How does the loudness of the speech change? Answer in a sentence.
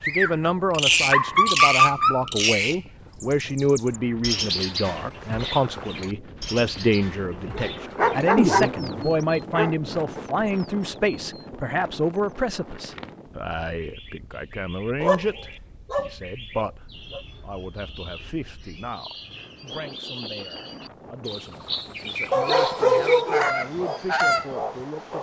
The volume of the speech goes down.